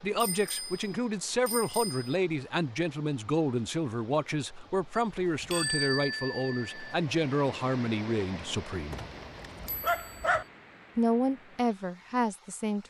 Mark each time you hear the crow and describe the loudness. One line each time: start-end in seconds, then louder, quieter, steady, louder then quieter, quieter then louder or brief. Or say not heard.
not heard.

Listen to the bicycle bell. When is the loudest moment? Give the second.
6 s.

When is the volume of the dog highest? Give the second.
10 s.